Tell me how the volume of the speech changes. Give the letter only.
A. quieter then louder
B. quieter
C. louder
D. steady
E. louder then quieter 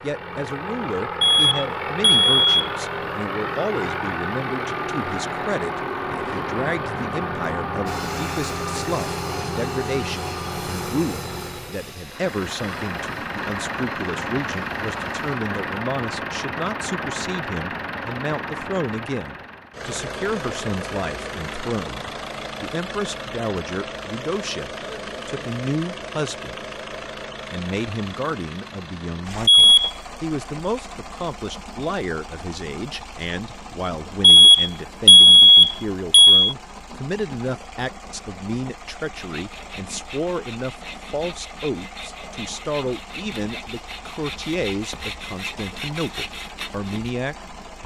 D.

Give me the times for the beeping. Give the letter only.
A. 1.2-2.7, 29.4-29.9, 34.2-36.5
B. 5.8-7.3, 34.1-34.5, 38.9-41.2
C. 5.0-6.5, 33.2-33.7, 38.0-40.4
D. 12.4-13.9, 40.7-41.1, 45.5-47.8
A.